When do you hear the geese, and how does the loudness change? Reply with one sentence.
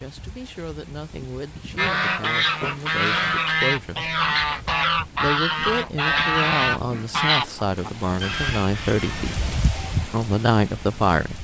The geese can be heard from 1.8 to 9.4 s, getting quieter.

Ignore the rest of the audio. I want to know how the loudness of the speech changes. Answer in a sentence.
The volume of the speech goes up.